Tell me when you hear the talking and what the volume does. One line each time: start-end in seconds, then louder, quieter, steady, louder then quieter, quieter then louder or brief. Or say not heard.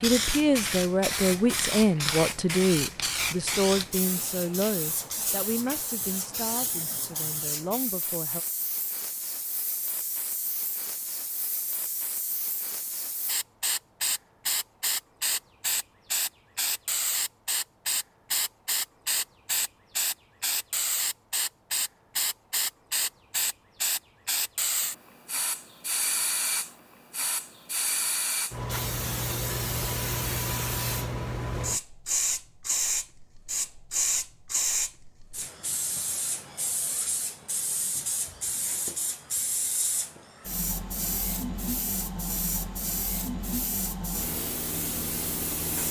0.0-8.4 quieter.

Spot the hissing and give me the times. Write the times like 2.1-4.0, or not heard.
0.0-45.8.